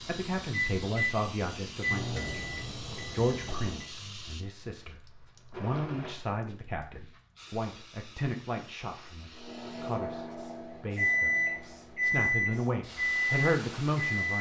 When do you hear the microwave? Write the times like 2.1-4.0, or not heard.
0.0-4.2, 9.3-14.3.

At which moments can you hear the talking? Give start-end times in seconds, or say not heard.
0.0-11.3, 12.0-14.3.